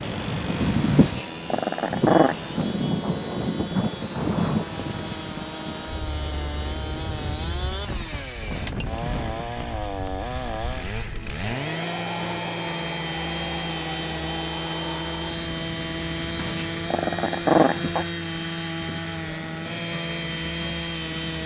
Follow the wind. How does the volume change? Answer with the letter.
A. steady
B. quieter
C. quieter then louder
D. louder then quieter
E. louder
B.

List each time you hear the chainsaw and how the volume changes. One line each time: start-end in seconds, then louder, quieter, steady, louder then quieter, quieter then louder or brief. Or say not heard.
0.0-21.4 louder.